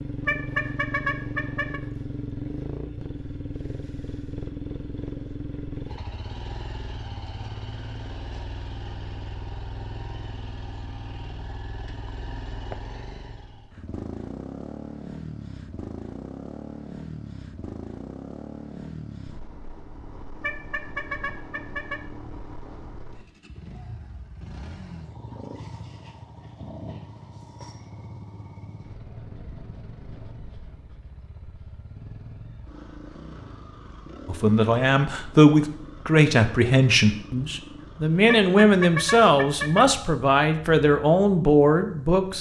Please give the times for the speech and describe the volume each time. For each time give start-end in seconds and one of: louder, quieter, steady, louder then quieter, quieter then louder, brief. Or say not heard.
34.2-42.3 steady.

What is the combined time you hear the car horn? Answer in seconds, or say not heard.
5 s.